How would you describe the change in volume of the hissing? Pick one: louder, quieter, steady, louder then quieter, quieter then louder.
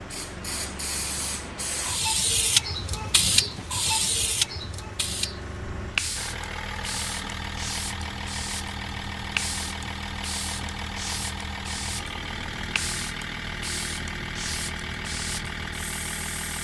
quieter.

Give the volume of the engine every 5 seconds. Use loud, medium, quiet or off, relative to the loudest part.
medium, loud, loud, loud.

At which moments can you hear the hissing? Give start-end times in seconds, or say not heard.
0.0-16.5.